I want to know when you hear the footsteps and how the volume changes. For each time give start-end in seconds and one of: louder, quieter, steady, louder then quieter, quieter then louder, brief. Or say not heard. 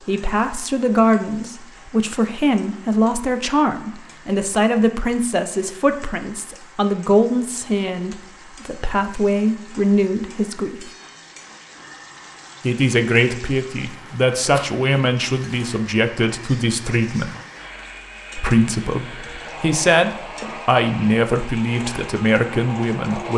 not heard.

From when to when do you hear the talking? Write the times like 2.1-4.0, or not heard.
0.1-10.8, 12.6-17.3, 18.4-23.3.